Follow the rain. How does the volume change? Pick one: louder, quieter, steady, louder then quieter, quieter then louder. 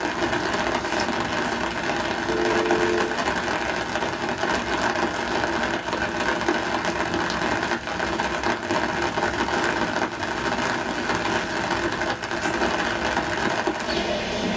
steady.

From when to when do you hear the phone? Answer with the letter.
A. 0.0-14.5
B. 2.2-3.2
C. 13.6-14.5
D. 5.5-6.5
B.